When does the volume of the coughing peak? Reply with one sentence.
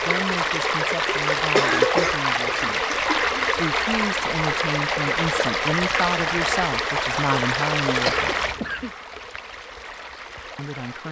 The volume of the coughing peaks at 2 seconds.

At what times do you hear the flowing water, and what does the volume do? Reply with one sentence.
You can hear the flowing water from 0.0 to 11.0 s, getting quieter.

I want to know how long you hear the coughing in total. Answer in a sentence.
You can hear the coughing for 3 seconds altogether.